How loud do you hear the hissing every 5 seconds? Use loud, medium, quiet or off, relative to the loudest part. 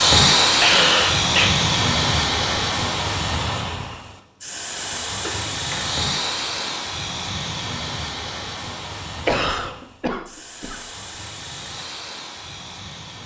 loud, medium, quiet.